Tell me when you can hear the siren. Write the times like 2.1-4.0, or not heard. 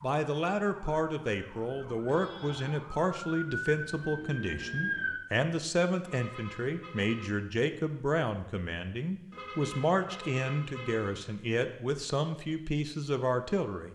0.0-5.2.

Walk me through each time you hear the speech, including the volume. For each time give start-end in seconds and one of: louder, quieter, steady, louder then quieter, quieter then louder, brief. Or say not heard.
0.0-13.9 steady.